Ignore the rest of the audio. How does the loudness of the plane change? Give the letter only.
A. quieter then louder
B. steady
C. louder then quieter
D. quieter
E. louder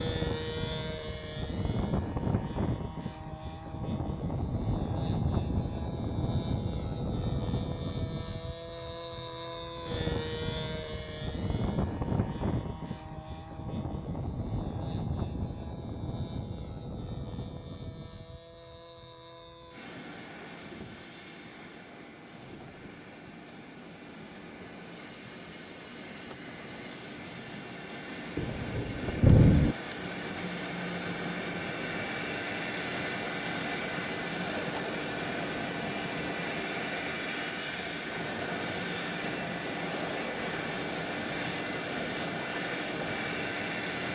A.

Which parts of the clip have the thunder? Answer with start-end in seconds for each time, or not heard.
28.4-29.8.